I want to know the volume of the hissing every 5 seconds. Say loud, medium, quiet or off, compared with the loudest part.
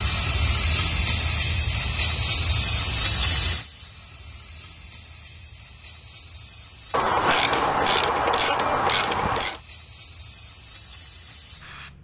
loud, quiet, quiet.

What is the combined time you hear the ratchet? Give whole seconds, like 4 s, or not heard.
3 s.